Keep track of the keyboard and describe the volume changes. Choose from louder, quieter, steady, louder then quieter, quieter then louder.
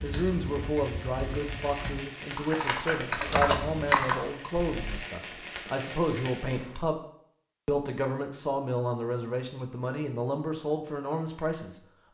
louder then quieter.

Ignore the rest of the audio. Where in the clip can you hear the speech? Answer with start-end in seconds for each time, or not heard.
0.0-7.0, 7.7-12.0.